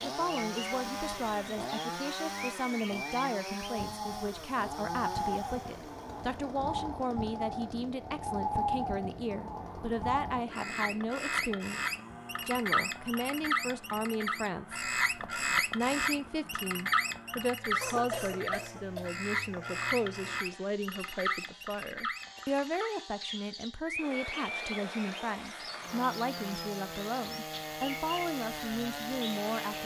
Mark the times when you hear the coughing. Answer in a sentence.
You can hear the coughing from 17.8 to 19.1 s.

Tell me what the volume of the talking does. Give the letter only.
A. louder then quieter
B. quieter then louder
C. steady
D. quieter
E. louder
C.